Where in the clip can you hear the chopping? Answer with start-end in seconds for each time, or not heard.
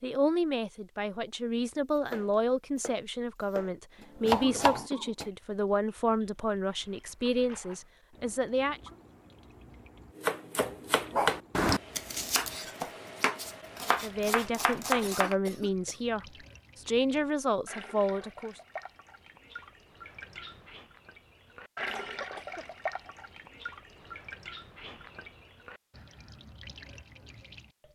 1.9-5.2, 10.2-15.3.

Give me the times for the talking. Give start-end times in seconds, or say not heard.
0.0-8.8, 13.8-18.6.